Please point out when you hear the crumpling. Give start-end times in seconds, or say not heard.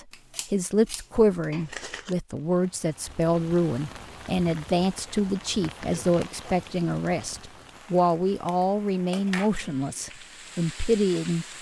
1.5-2.1.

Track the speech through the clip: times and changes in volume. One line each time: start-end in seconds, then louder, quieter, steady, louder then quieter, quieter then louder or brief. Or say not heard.
0.5-11.4 steady.